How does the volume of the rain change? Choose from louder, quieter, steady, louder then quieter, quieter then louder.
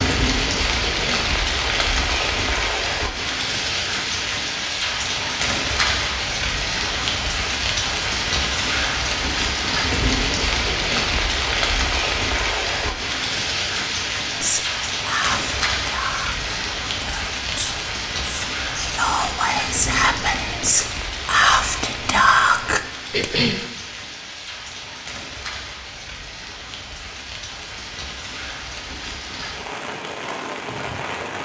quieter.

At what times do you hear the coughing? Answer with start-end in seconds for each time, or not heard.
0.9-1.4, 10.7-11.2, 23.1-23.6.